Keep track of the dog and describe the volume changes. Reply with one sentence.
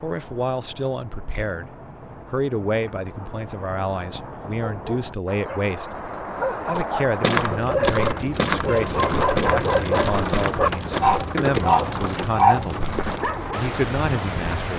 The loudness of the dog goes up.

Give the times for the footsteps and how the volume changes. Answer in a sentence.
The footsteps can be heard from 6.8 to 13.3 s, getting quieter.